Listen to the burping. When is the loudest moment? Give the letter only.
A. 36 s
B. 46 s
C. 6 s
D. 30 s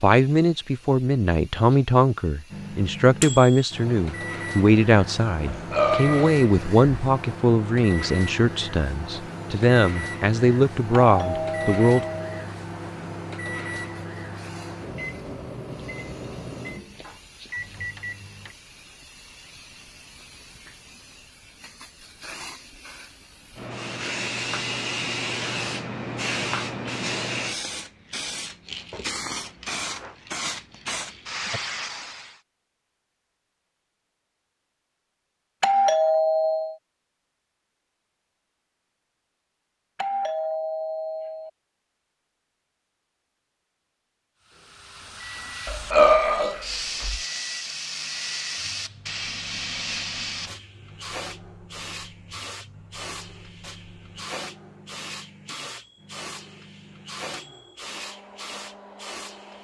B.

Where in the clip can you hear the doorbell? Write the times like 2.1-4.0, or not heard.
11.1-12.3, 35.6-36.8, 40.0-41.5.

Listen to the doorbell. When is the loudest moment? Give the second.
36 s.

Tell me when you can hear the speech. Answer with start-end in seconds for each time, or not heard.
0.0-12.1.